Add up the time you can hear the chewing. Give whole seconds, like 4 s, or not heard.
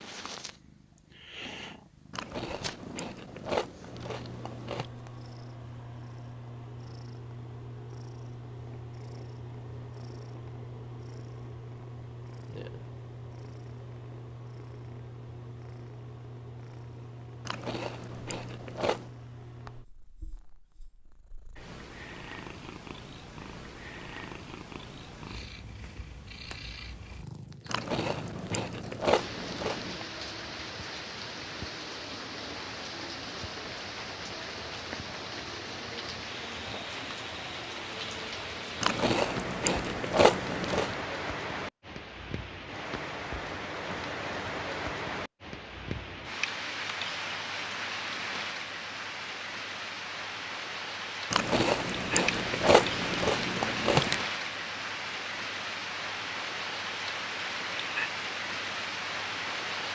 12 s.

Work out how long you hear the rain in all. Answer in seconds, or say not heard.
31 s.